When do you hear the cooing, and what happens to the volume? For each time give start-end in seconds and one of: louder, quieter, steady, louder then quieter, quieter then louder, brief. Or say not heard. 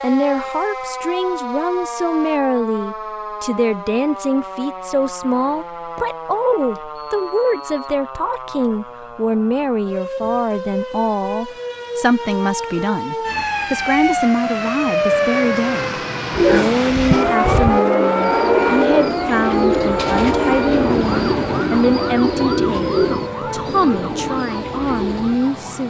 16.3-25.4 louder then quieter.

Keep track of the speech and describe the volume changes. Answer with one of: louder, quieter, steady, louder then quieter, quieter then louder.
steady.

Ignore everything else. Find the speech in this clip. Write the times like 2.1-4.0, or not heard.
0.0-25.8.